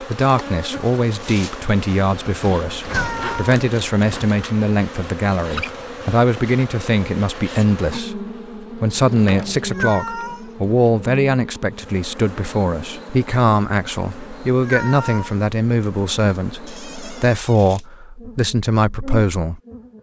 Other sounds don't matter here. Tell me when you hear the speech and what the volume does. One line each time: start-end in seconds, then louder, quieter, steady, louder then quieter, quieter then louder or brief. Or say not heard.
0.0-19.9 steady.